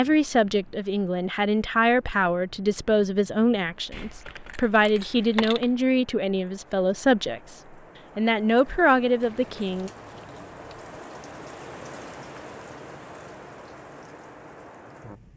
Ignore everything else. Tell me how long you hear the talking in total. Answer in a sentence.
The talking can be heard for 9 seconds in total.